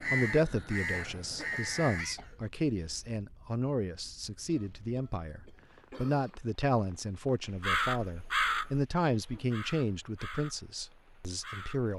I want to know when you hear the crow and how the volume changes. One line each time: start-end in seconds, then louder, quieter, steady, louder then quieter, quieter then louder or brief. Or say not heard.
0.0-2.1 brief
7.5-11.9 quieter.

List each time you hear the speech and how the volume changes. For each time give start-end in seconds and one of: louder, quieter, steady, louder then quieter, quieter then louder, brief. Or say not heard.
0.0-11.9 steady.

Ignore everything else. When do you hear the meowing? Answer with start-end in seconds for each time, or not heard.
not heard.